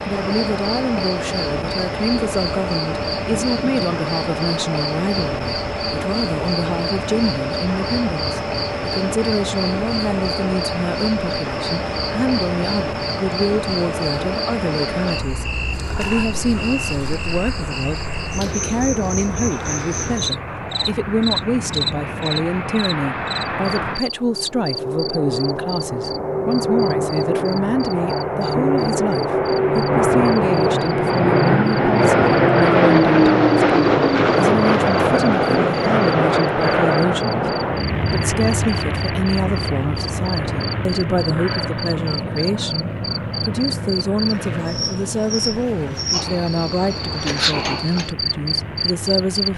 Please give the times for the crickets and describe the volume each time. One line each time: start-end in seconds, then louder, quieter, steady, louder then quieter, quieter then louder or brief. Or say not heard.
0.0-49.5 quieter then louder.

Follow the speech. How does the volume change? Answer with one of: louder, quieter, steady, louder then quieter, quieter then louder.
steady.